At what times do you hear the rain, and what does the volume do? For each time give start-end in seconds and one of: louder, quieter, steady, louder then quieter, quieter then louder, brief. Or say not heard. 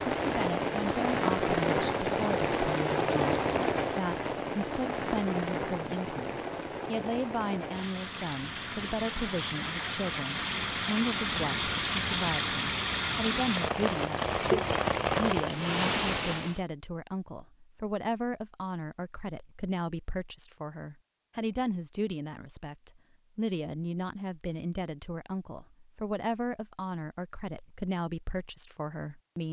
0.0-16.6 quieter then louder.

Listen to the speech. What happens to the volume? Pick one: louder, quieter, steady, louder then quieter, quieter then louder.
steady.